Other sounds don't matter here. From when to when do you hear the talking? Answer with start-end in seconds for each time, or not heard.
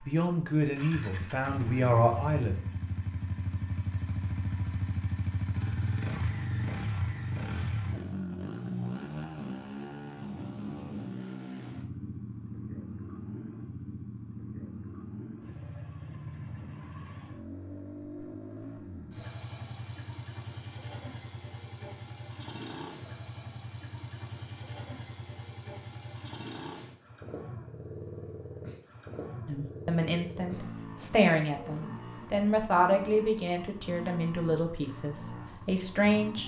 0.0-2.5, 29.4-36.4.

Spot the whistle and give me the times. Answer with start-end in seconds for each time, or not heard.
not heard.